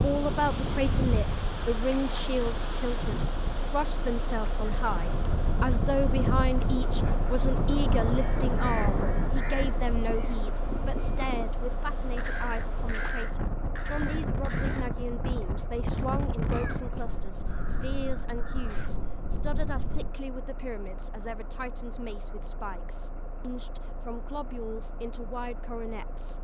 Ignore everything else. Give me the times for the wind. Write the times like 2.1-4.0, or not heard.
0.0-20.1.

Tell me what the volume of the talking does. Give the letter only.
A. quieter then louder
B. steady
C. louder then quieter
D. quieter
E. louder
D.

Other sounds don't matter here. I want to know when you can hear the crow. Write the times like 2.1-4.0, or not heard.
8.1-11.4, 12.2-18.9.